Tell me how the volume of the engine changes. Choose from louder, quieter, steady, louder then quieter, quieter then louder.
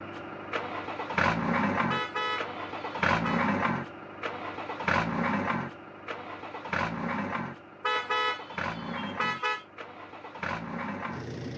quieter.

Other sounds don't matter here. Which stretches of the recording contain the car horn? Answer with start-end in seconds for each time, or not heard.
1.9-3.5, 7.8-9.7.